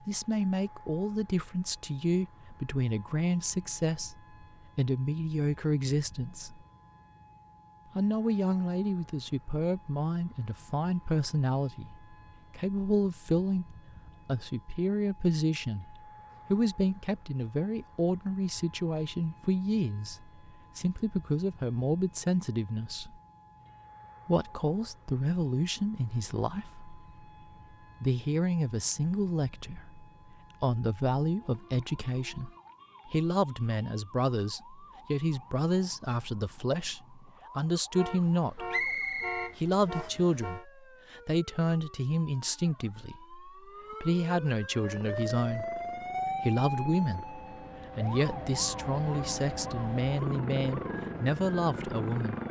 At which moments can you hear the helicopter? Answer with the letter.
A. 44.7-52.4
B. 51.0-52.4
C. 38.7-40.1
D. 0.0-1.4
A.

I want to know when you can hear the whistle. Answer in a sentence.
The whistle can be heard from 38.7 to 40.1 s.